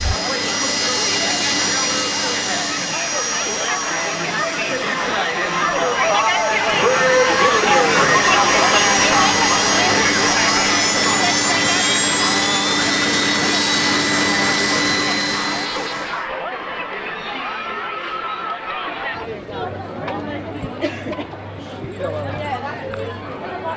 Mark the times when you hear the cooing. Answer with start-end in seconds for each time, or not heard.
not heard.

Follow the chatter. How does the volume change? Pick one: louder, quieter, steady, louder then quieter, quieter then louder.
louder then quieter.